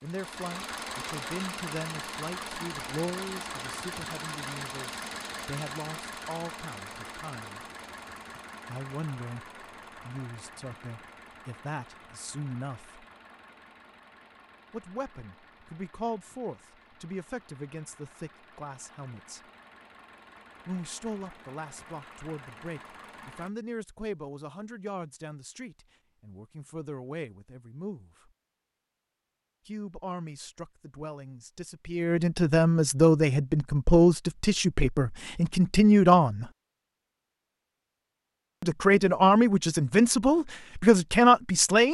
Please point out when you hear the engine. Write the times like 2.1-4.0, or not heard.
0.0-23.5.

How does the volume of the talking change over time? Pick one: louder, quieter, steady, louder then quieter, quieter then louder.
louder.